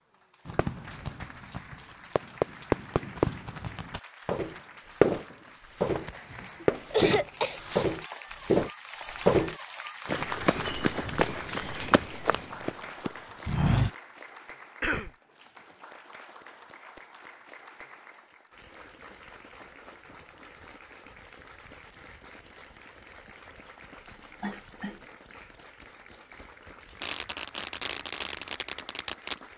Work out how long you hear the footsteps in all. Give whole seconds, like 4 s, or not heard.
9 s.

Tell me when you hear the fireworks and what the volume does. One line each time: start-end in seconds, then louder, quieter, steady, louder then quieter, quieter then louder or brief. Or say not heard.
0.5-5.3 louder then quieter
6.0-8.0 brief
27.0-29.4 brief.